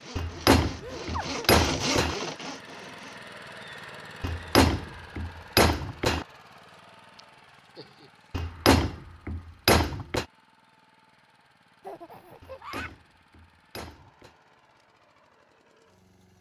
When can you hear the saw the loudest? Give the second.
2 s.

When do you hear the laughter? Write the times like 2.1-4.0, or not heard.
0.8-1.5, 7.2-8.1, 11.8-12.9.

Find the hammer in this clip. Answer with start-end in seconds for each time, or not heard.
0.1-2.1, 4.2-6.2, 8.3-10.2, 12.4-14.3.